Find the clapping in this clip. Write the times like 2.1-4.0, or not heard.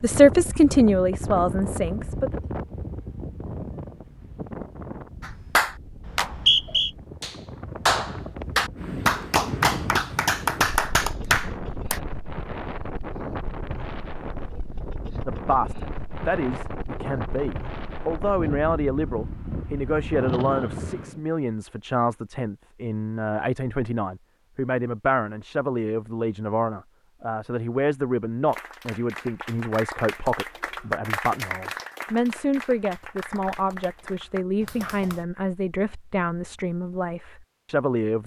5.2-12.0, 28.4-35.2.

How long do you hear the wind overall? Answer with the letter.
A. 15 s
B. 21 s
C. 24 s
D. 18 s
B.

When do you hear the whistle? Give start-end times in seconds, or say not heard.
6.0-6.9.